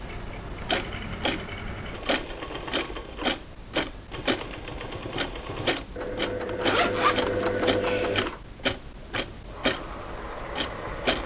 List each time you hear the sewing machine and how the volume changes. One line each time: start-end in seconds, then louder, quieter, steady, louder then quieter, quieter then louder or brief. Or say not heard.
0.0-11.2 louder then quieter.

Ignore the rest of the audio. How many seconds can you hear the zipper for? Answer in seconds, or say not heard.
2 s.